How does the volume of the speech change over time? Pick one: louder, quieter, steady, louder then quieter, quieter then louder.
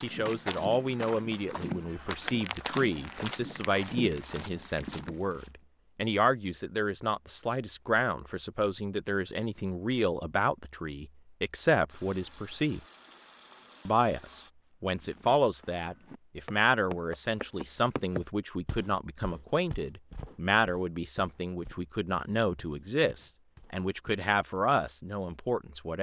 steady.